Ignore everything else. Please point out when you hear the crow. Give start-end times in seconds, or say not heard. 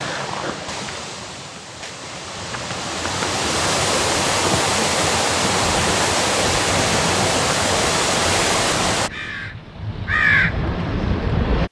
5.8-11.6.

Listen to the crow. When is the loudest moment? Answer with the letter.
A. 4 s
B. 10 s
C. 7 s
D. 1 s
B.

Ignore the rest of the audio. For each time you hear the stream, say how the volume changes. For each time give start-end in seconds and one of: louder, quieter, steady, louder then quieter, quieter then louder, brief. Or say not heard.
0.0-9.1 louder.